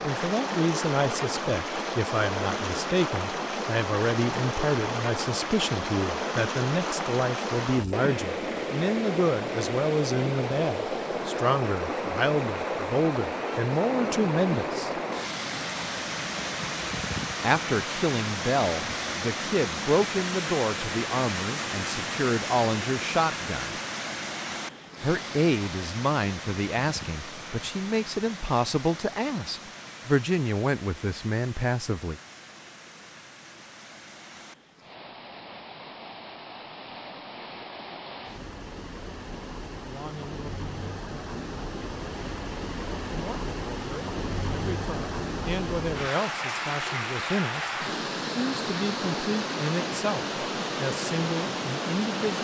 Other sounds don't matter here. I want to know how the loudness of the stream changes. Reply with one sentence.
The loudness of the stream goes down, then up.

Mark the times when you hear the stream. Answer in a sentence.
The stream can be heard from 0.0 to 52.4 s.